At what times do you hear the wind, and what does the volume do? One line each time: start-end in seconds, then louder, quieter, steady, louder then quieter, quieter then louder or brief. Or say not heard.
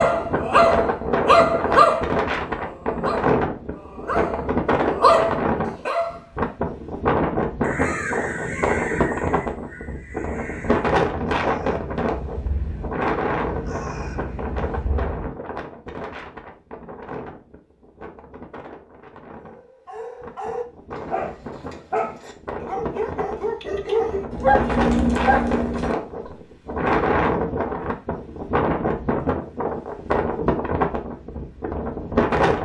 0.0-32.5 quieter then louder.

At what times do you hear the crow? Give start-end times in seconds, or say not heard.
7.6-15.3.